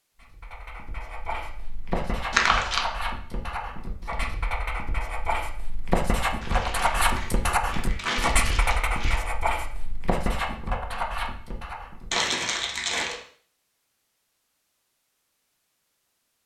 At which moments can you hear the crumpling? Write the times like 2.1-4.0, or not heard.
2.3-2.9, 6.4-9.2, 12.1-13.2.